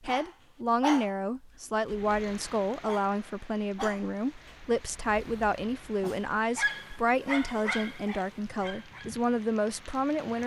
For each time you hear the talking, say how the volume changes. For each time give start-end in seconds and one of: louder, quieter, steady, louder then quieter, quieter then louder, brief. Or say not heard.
0.0-10.4 steady.